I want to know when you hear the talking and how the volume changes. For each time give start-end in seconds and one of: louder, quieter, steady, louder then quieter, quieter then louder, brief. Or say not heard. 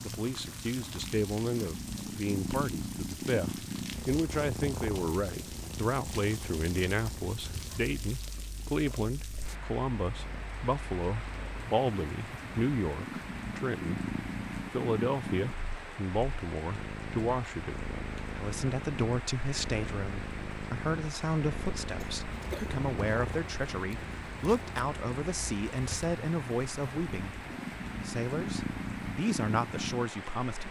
0.0-14.0 steady
14.7-27.4 steady
28.1-30.6 brief.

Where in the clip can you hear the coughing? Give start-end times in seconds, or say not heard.
22.0-22.7.